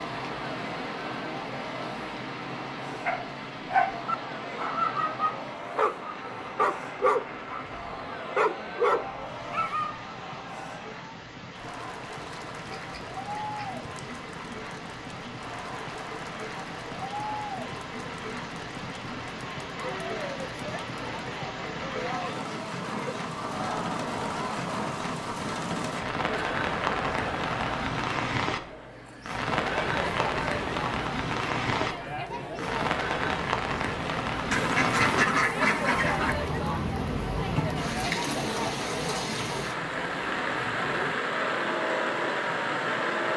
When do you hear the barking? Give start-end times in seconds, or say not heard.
3.0-10.0.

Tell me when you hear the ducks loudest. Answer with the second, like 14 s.
35 s.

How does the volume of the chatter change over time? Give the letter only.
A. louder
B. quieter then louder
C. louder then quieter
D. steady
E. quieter
A.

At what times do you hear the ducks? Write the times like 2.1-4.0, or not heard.
12.2-14.2, 34.5-36.4.